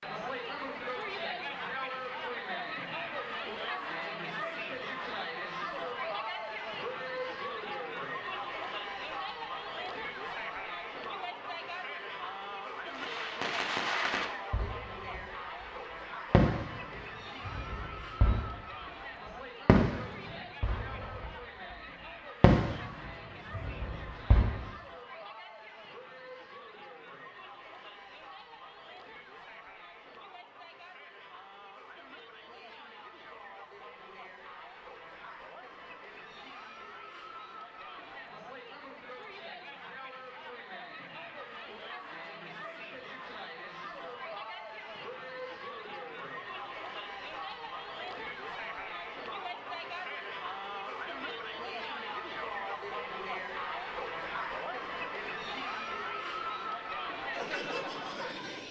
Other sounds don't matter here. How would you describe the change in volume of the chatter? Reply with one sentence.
The volume of the chatter goes down, then up.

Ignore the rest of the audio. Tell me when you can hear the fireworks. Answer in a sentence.
You can hear the fireworks from 12.9 to 15.2 s, from 16.3 to 18.6 s, from 19.6 to 21.3 s, from 22.4 to 22.9 s and from 23.5 to 24.6 s.